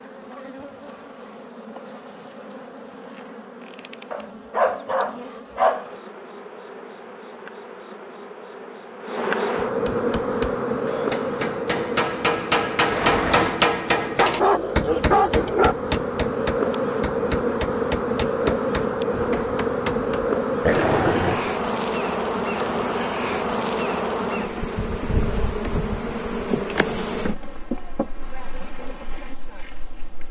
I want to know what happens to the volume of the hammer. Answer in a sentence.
The volume of the hammer goes up, then down.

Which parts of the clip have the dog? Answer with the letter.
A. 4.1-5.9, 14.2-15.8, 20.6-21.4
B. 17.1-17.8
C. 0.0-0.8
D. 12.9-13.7
A.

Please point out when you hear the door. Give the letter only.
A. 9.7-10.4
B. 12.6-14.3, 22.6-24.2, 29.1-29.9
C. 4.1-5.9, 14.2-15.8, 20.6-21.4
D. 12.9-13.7
D.